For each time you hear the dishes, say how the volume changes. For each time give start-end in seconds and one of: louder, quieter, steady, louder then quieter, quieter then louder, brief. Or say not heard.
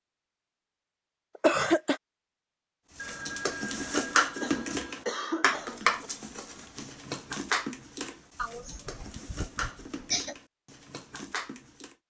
3.0-11.9 quieter.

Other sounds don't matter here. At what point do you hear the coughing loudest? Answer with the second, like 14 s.
2 s.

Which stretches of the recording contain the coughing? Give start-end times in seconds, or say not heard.
1.4-2.0, 4.3-6.1, 8.3-10.3.